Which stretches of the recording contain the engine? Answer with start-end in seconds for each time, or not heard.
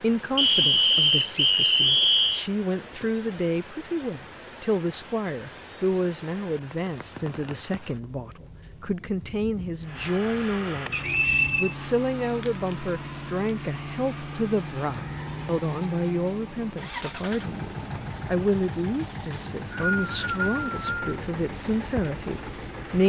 9.8-23.0.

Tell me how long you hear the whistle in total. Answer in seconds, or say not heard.
5 s.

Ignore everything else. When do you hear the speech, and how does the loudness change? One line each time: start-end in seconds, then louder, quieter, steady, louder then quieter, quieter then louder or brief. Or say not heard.
0.0-23.0 steady.